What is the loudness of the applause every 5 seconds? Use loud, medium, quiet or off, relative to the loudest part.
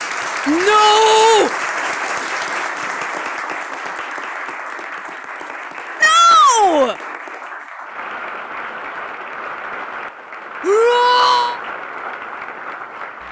loud, medium, medium.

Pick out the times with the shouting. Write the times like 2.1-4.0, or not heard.
0.5-1.5, 6.0-7.0, 10.6-11.6.